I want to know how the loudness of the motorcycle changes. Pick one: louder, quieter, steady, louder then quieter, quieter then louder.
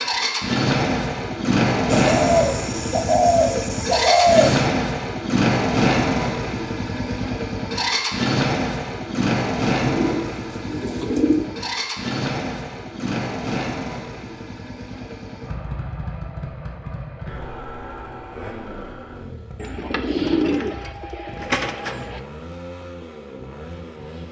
quieter.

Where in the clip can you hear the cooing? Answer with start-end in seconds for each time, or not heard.
1.9-4.7, 9.8-11.5, 19.6-22.2.